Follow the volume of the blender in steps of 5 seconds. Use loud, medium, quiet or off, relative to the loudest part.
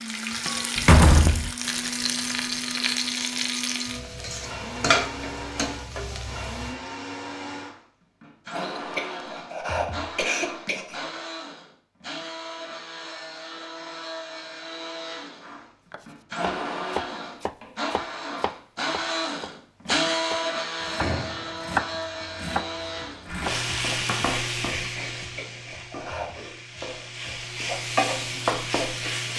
medium, medium, medium, loud, loud, off.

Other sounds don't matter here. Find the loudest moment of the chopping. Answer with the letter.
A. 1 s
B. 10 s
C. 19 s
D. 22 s
D.